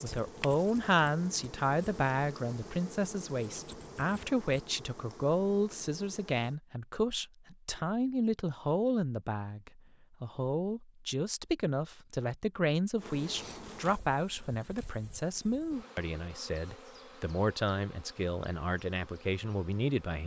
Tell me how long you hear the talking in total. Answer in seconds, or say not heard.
20 s.